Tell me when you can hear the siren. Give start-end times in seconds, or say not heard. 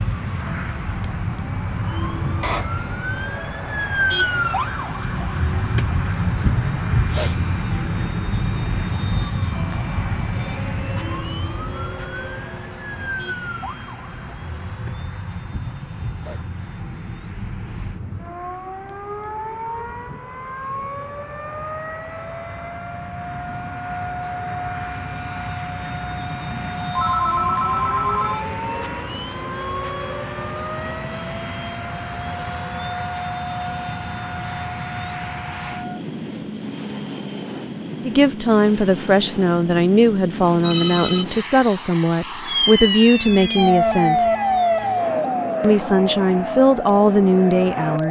0.0-36.0, 42.5-48.0.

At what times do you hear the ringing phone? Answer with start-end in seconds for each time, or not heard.
2.4-3.0, 26.5-28.4, 40.6-41.2.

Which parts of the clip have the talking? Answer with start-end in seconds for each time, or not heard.
38.0-44.2, 45.6-48.0.